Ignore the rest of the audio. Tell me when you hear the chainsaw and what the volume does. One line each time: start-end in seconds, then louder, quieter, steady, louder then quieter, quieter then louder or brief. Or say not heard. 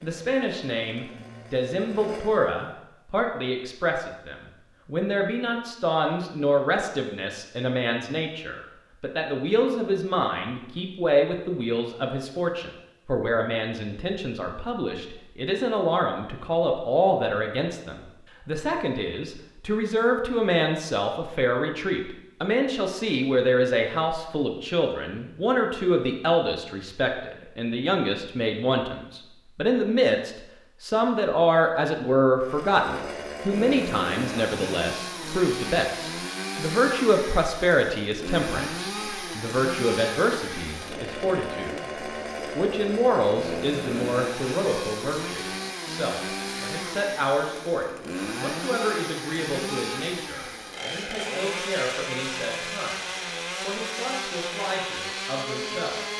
0.0-2.6 brief
32.4-56.1 steady.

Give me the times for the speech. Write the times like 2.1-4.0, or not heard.
0.0-41.9, 42.5-56.1.